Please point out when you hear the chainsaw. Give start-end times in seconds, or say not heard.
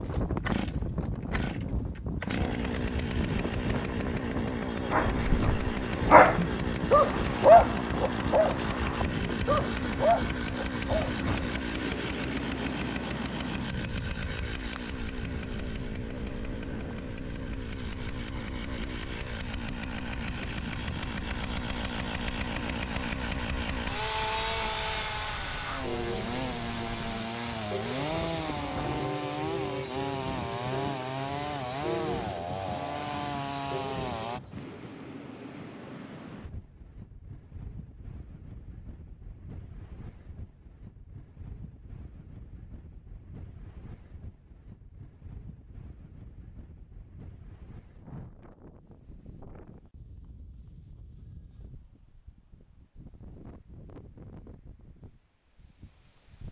0.0-34.4.